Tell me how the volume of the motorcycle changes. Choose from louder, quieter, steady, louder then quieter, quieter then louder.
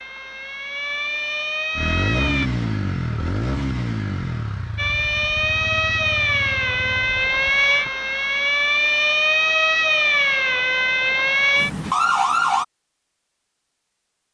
quieter.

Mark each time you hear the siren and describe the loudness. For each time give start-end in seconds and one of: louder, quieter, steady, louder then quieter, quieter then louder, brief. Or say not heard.
0.0-2.5 brief
4.8-12.7 steady.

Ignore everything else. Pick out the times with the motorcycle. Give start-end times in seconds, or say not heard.
1.8-8.1.